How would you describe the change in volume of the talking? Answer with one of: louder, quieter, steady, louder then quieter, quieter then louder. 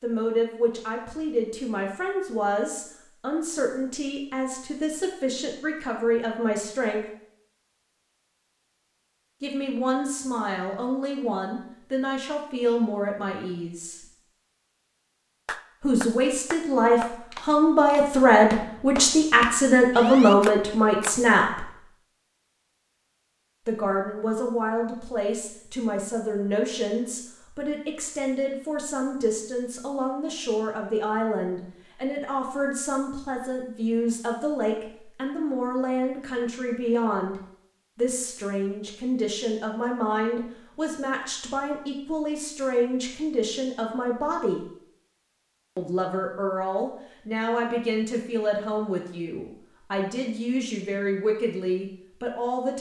louder then quieter.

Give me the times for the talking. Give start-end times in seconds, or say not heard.
0.0-7.0, 9.4-14.1, 15.8-21.7, 23.6-44.7, 45.8-52.7.